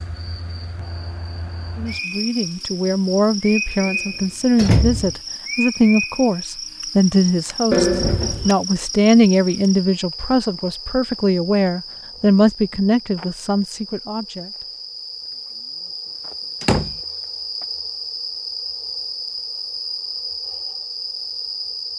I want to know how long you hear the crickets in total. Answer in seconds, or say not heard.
22 s.